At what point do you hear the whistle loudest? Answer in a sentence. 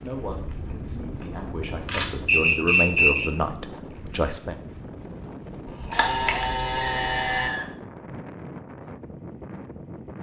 The volume of the whistle peaks at 3 seconds.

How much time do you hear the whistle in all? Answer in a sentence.
The whistle can be heard for 2 seconds in total.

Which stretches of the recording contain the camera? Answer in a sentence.
The camera can be heard from 0.3 to 2.5 s and from 5.7 to 7.5 s.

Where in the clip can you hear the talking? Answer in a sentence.
You can hear the talking from 0.0 to 4.5 s.